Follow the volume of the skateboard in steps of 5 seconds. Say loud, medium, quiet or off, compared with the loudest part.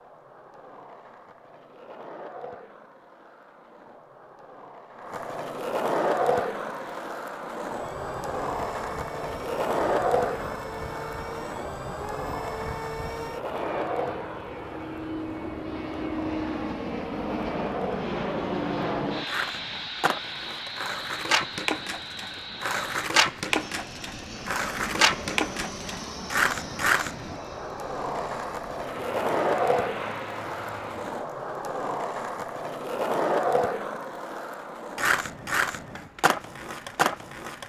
quiet, loud, medium, medium, loud, loud, loud, loud.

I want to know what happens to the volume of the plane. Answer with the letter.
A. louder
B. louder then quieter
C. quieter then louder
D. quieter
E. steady
B.